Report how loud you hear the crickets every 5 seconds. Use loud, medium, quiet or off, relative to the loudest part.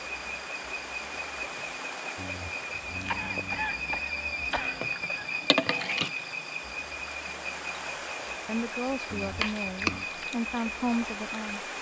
loud, loud, medium.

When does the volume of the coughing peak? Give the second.
4 s.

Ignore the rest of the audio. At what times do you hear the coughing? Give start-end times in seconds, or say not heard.
3.0-5.3.